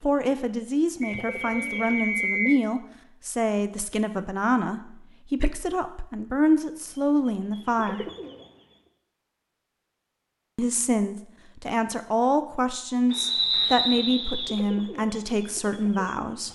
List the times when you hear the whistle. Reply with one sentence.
You can hear the whistle from 1.0 to 2.6 s and from 13.1 to 14.6 s.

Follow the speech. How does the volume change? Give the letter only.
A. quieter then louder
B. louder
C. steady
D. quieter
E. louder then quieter
C.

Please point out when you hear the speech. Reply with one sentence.
The speech can be heard from 0.0 to 8.1 s and from 10.6 to 16.5 s.